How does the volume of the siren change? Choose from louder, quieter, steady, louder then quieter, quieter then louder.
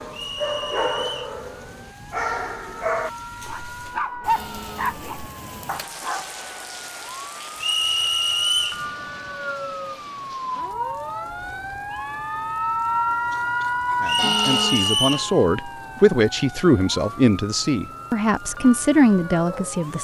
louder then quieter.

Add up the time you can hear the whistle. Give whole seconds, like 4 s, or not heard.
4 s.